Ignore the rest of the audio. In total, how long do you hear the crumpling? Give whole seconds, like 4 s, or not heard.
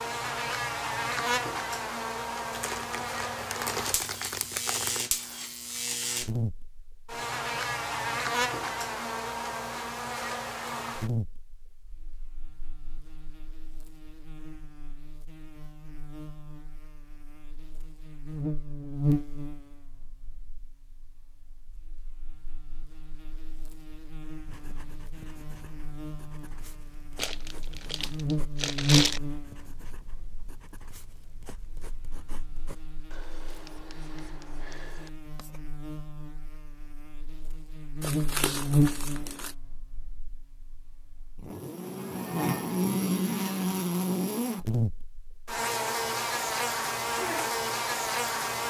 6 s.